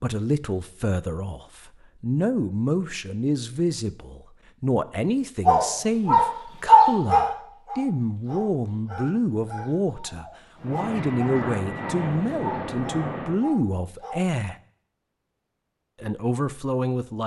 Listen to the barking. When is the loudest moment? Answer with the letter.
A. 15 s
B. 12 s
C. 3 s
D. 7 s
D.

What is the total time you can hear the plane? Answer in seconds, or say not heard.
3 s.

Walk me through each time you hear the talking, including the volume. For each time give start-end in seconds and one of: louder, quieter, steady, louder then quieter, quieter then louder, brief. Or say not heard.
0.0-14.6 steady
16.0-17.2 brief.